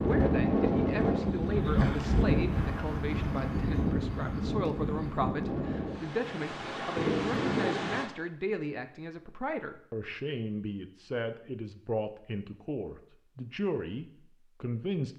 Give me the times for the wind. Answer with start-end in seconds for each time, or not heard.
0.0-8.1.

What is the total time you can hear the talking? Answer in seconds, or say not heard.
15 s.